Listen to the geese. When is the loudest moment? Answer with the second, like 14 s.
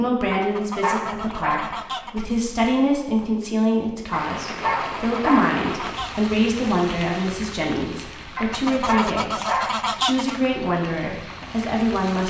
10 s.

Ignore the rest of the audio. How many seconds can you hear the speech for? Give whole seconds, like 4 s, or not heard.
12 s.